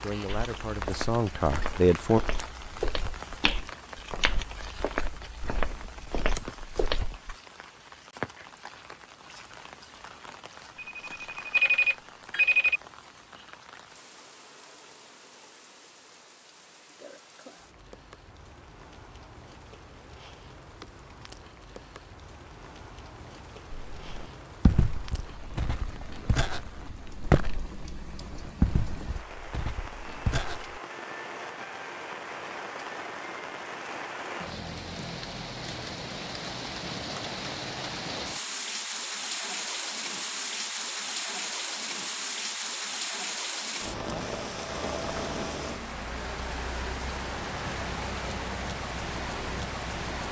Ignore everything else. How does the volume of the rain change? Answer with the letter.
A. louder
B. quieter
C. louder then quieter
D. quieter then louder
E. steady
D.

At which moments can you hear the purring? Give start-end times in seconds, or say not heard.
not heard.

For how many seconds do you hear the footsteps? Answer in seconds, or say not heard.
14 s.